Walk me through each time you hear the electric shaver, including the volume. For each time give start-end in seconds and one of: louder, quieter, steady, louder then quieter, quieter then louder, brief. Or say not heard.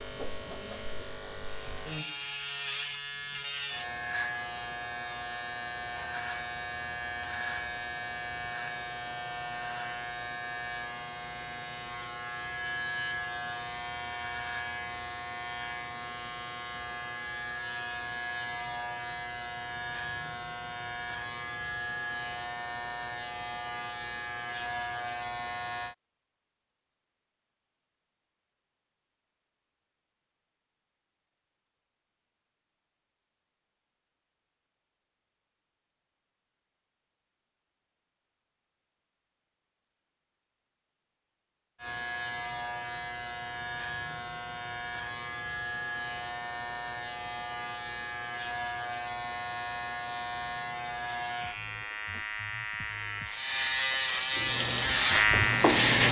0.0-25.9 steady
41.8-55.9 louder.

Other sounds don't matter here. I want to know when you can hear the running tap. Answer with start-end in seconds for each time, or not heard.
54.4-56.0.